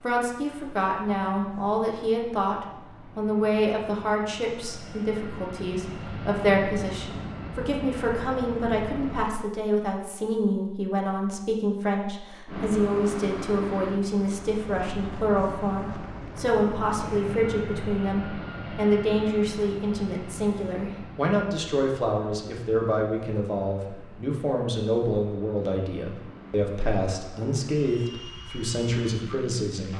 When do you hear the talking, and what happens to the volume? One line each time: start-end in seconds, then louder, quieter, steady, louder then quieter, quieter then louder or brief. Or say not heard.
0.0-29.9 steady.